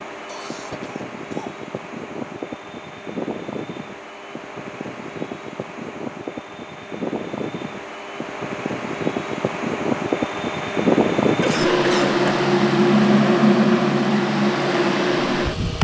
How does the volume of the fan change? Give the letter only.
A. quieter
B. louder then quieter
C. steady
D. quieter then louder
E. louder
E.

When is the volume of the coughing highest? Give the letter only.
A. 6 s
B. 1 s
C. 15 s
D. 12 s
D.